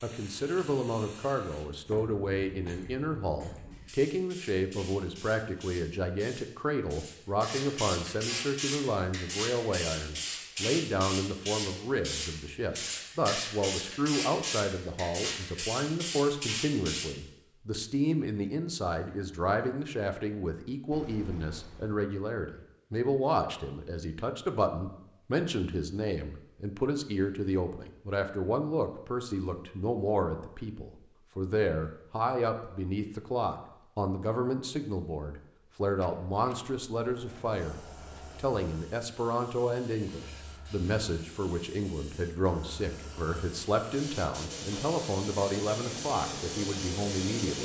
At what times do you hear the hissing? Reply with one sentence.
The hissing can be heard from 0.0 to 17.1 s and from 37.4 to 47.6 s.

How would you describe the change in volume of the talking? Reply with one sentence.
The volume of the talking stays about the same.